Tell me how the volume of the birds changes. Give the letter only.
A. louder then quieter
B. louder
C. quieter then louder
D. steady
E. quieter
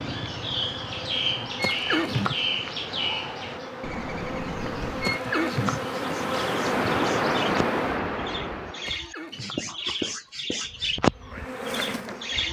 C.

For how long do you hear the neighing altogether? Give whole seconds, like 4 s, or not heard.
3 s.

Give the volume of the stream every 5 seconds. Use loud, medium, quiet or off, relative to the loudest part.
quiet, loud, off.